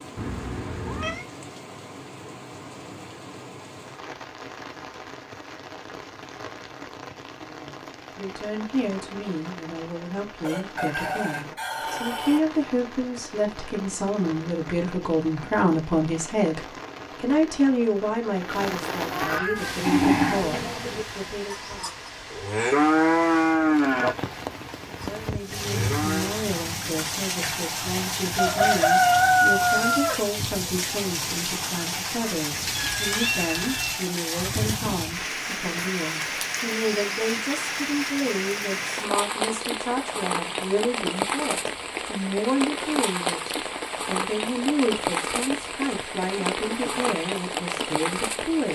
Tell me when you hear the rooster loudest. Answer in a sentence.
The loudest moment of the rooster is at 29 seconds.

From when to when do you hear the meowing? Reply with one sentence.
You can hear the meowing from 0.1 to 1.2 s, from 19.1 to 19.8 s and from 32.7 to 34.0 s.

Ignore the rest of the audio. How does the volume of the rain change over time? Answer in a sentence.
The loudness of the rain goes up.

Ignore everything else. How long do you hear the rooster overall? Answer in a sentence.
You can hear the rooster for 4 seconds altogether.